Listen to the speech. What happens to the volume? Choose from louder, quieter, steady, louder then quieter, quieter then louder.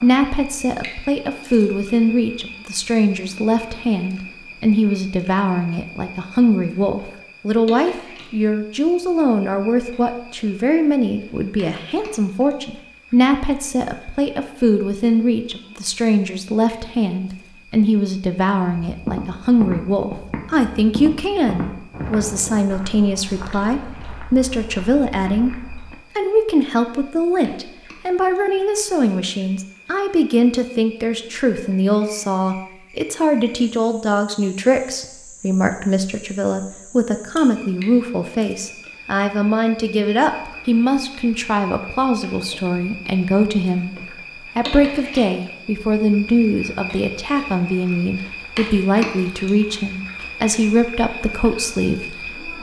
steady.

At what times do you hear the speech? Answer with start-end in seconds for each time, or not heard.
0.0-25.5, 26.1-52.5.